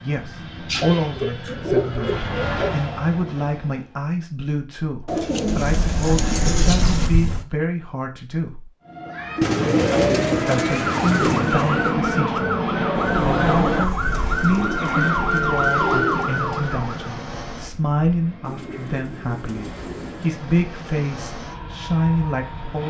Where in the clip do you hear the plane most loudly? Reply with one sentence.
The loudest moment of the plane is at 13 seconds.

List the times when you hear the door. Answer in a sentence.
You can hear the door from 5.6 to 7.5 s and from 13.1 to 14.6 s.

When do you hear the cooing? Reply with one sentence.
You can hear the cooing from 0.7 to 2.8 s, from 5.0 to 7.1 s, from 9.4 to 11.9 s, from 14.1 to 16.4 s and from 18.4 to 20.4 s.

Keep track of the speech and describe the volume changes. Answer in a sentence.
The loudness of the speech stays about the same.